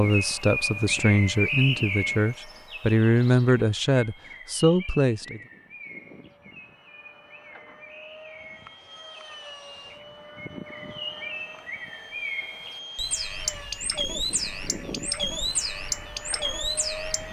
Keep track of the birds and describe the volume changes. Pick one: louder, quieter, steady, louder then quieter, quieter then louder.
quieter then louder.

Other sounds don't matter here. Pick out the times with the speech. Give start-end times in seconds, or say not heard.
0.0-5.4.